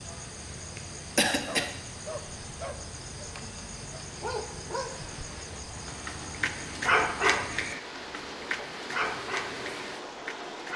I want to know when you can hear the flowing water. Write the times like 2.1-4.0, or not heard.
0.0-10.7.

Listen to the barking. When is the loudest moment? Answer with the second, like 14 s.
7 s.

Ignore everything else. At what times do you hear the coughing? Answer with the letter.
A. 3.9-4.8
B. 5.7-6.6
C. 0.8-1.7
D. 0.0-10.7
C.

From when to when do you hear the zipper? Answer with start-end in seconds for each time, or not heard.
not heard.